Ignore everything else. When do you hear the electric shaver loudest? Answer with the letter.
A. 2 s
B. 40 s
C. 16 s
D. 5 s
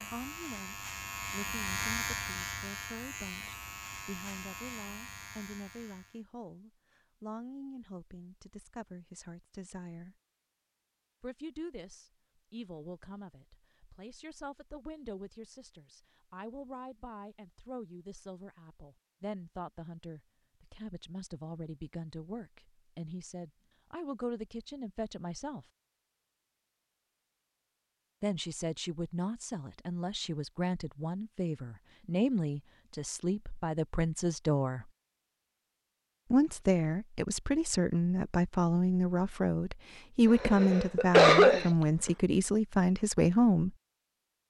A.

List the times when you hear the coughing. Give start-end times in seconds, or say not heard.
40.4-42.1.